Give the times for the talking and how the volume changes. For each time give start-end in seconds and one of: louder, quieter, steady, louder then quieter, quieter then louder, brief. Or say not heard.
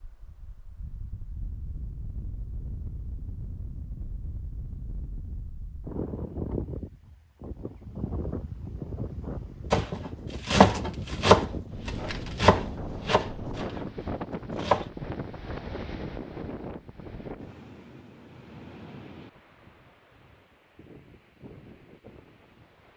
not heard.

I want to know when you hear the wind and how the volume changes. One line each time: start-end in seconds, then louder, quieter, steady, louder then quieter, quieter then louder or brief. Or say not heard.
0.0-22.9 louder then quieter.